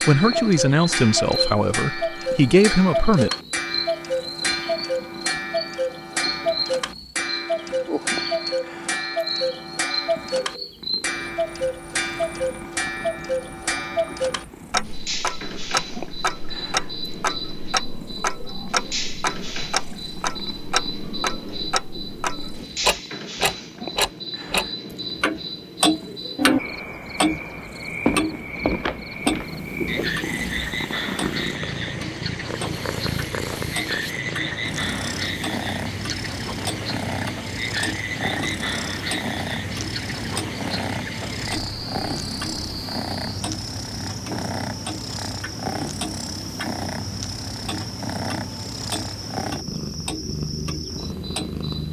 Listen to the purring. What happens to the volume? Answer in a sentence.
The volume of the purring goes up.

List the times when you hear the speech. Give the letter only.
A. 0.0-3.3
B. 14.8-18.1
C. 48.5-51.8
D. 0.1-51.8
A.